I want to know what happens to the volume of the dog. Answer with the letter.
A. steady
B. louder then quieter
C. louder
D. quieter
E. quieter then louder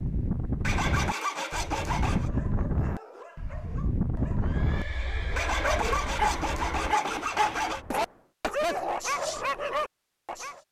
C.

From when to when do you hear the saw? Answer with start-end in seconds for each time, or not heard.
0.6-2.3, 5.3-7.8.